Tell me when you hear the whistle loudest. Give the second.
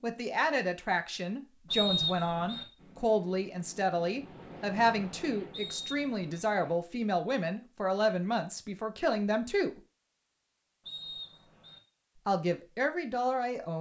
2 s.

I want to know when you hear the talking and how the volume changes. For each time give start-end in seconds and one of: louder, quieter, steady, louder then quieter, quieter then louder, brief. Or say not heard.
0.0-9.8 steady
12.2-13.7 brief.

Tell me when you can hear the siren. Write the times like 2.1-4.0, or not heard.
not heard.